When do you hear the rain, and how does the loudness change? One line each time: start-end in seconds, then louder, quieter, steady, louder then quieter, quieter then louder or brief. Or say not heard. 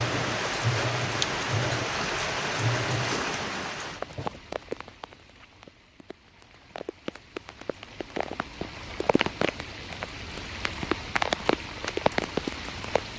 0.0-13.1 quieter then louder.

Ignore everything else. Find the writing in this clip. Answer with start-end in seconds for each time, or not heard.
not heard.